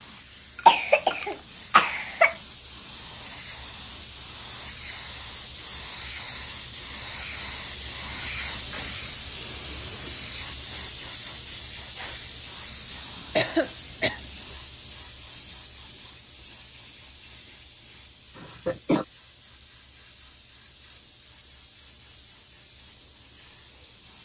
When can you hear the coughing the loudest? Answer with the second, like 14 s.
1 s.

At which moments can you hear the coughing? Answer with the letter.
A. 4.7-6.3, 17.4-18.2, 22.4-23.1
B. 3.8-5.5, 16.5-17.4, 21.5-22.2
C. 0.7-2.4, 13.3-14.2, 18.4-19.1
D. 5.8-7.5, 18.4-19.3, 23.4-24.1
C.